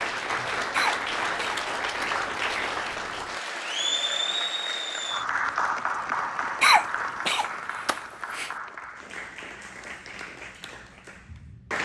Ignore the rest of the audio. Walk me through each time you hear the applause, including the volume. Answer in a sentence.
You can hear the applause from 0.0 to 11.7 s, getting quieter.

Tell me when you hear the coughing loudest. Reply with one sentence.
The volume of the coughing peaks at 7 seconds.